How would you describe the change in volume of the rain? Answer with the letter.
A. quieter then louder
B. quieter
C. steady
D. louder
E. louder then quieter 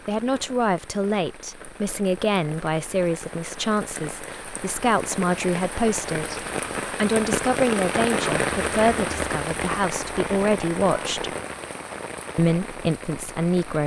E.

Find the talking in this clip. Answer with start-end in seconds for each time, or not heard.
0.1-11.3, 12.3-13.8.